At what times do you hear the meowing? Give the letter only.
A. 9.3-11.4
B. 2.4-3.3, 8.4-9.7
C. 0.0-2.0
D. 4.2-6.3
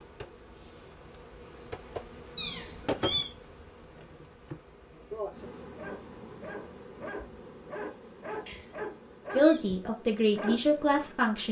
B.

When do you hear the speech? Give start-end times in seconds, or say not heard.
9.3-11.4.